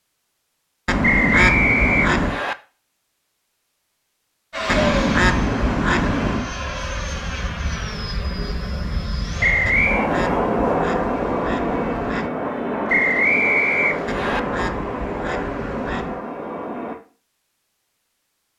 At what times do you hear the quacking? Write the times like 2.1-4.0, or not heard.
0.8-2.4, 4.7-6.5, 9.7-12.3, 14.1-16.2.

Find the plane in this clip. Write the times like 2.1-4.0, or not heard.
4.5-16.9.